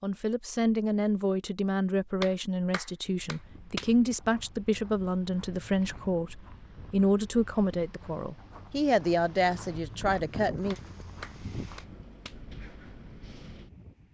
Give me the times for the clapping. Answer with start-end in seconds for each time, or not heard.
2.2-4.0, 10.7-12.4.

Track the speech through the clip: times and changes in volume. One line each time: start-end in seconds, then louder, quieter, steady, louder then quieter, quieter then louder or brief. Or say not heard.
0.0-10.8 steady.